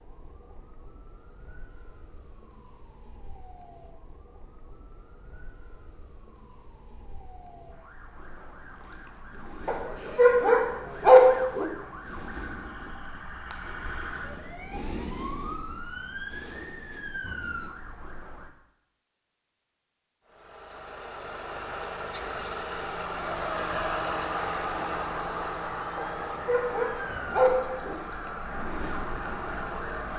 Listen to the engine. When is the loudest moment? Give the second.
24 s.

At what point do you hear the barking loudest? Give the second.
11 s.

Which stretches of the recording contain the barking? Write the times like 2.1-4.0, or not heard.
9.7-11.7, 25.9-27.9.